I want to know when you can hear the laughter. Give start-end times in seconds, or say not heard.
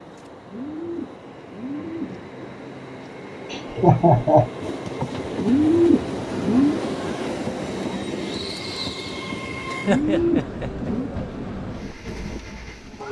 3.5-4.5, 9.7-10.9.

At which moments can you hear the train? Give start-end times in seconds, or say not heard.
0.0-13.0.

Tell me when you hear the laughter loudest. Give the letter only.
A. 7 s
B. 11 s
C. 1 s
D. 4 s
D.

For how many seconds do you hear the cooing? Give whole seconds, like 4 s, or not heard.
5 s.